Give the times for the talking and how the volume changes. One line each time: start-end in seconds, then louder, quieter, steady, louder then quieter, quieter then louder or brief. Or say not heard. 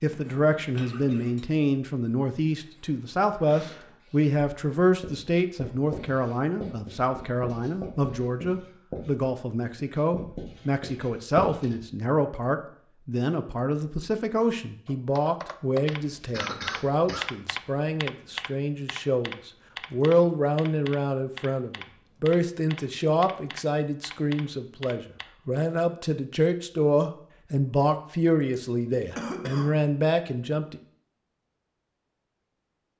0.0-30.8 steady.